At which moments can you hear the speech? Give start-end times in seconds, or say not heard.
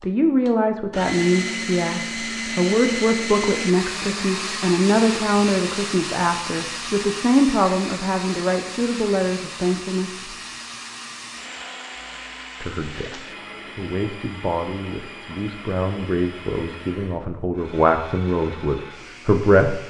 0.0-10.3, 12.6-19.8.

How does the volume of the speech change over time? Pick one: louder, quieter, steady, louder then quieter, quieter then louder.
quieter then louder.